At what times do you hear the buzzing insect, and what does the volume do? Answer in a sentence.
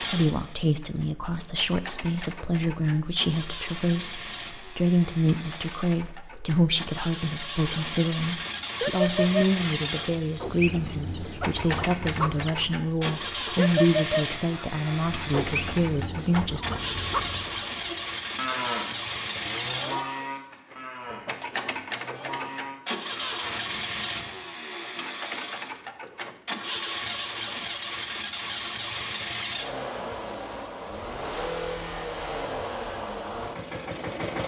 The buzzing insect can't be heard in this clip.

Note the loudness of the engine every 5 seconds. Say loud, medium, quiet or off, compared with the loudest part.
medium, loud, loud, loud, loud, loud, loud.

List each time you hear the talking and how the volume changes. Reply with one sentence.
You can hear the talking from 0.0 to 16.6 s, at a steady volume.